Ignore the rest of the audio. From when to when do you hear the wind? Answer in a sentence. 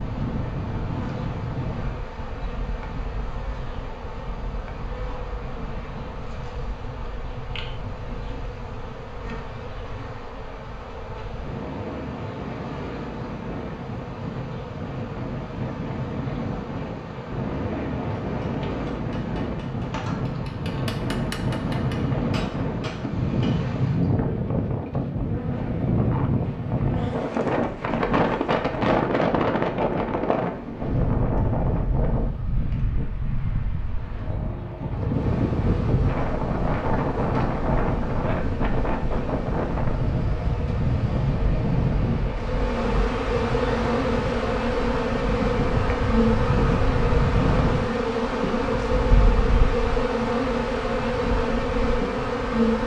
The wind can be heard from 0.0 to 52.8 s.